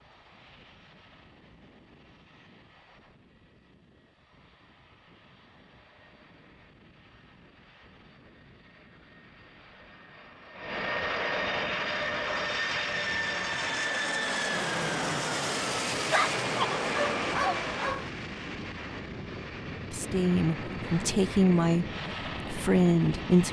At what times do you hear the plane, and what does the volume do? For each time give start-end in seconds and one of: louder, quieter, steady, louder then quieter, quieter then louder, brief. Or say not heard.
0.0-23.4 louder then quieter.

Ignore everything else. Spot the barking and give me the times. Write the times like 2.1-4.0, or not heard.
16.1-18.1.